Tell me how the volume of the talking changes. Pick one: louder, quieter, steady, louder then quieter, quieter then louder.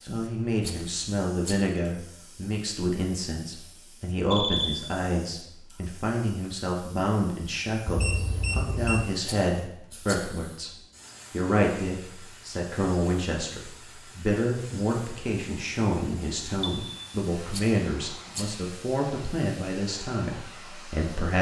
steady.